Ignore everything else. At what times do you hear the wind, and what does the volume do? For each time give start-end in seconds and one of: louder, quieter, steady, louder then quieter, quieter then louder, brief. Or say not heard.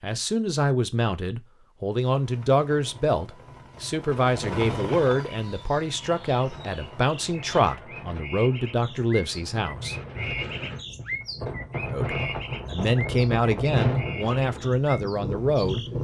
6.0-15.9 louder.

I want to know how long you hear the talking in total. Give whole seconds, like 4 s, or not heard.
14 s.